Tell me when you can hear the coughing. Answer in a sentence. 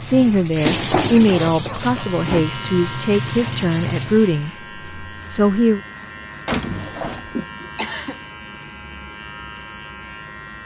The coughing can be heard from 1.2 to 2.1 s and from 6.5 to 8.2 s.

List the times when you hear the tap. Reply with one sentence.
The tap can be heard from 0.0 to 4.5 s.